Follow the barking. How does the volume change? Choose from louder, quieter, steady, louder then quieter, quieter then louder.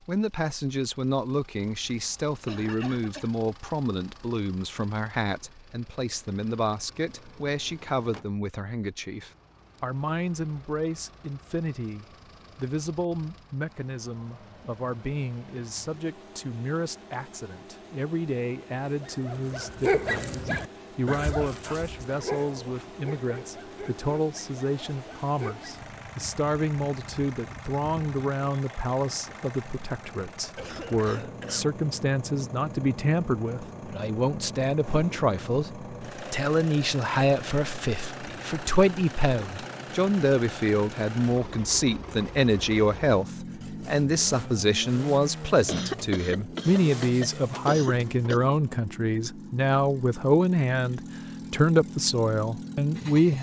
quieter.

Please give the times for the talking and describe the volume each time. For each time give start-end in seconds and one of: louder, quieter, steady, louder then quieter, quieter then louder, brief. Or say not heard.
0.1-53.3 louder.